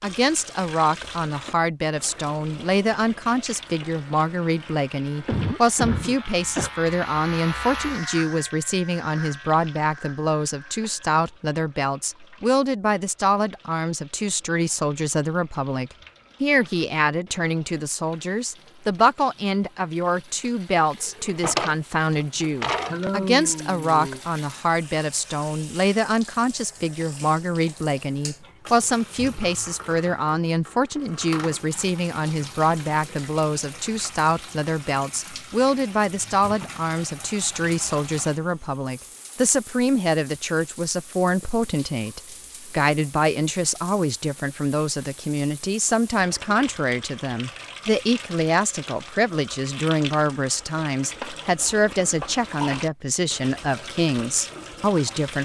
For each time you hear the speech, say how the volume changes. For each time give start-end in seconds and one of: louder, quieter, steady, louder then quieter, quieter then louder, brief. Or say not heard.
0.0-55.4 steady.